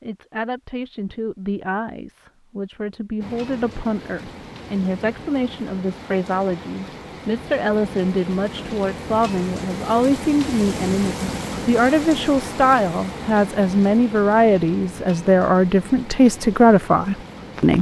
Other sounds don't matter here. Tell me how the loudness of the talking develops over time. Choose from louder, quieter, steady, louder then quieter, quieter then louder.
louder.